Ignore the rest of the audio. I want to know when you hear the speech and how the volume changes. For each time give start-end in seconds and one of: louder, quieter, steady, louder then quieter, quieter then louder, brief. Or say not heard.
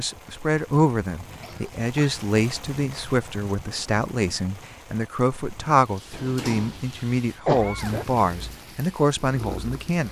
0.0-10.0 steady.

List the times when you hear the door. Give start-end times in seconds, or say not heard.
6.1-6.8.